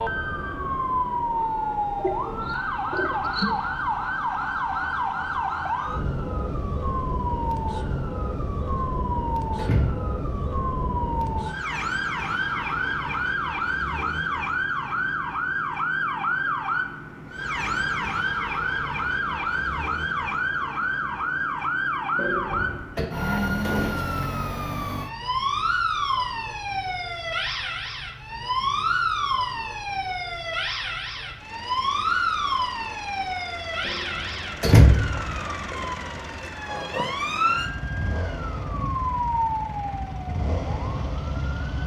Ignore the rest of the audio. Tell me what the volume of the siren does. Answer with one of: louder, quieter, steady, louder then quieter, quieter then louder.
steady.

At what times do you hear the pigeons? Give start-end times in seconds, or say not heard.
1.9-3.5.